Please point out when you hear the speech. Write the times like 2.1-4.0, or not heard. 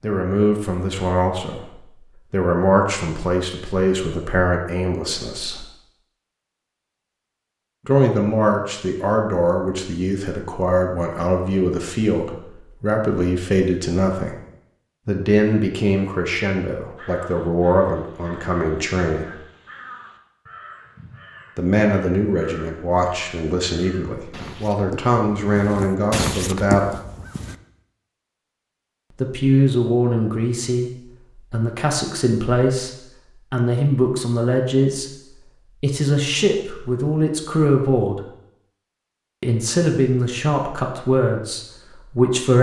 0.0-5.7, 7.8-14.3, 15.1-19.4, 21.6-26.9, 29.1-38.2, 39.4-42.5.